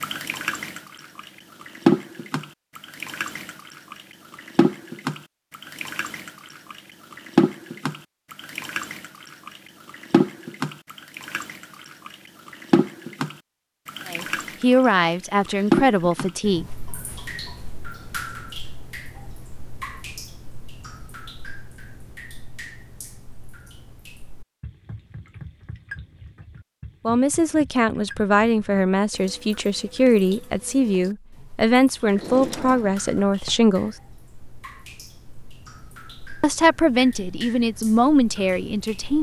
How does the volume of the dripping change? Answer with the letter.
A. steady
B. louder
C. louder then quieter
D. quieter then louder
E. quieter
E.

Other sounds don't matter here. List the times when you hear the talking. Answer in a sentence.
The talking can be heard from 14.1 to 16.6 s, from 27.1 to 34.0 s and from 36.4 to 39.1 s.